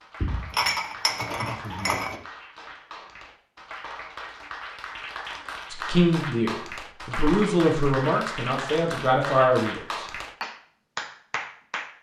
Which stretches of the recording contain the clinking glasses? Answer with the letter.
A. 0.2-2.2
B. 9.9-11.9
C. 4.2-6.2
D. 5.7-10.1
A.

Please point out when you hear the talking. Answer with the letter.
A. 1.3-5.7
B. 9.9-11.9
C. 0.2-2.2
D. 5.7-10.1
D.